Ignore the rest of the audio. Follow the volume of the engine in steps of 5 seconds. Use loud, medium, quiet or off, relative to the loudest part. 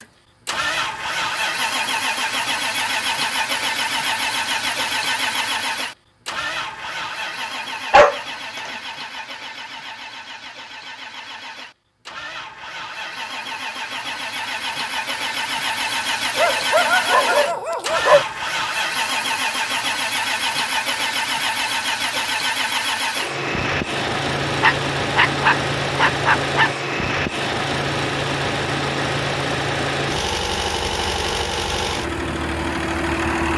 loud, medium, medium, loud, loud, loud, loud.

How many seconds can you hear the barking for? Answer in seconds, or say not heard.
5 s.